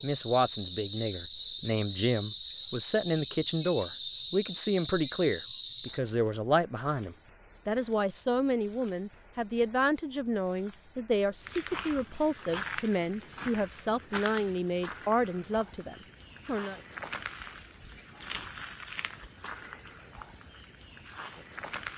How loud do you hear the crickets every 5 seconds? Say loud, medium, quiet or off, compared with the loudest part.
loud, medium, loud, loud, loud.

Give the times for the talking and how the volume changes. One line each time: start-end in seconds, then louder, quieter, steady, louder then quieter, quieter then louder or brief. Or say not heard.
0.0-16.8 steady.